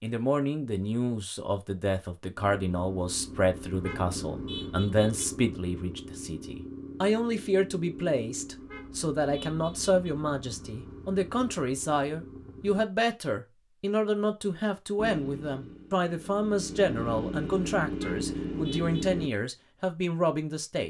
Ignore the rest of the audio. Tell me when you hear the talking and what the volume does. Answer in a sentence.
The talking can be heard from 0.0 to 20.8 s, at a steady volume.